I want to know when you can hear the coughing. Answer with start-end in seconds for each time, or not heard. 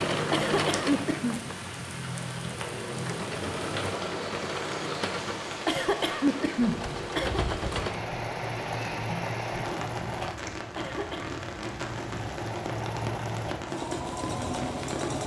0.3-1.4, 5.7-7.4, 10.8-11.4.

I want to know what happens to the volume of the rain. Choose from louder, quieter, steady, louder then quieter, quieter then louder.
steady.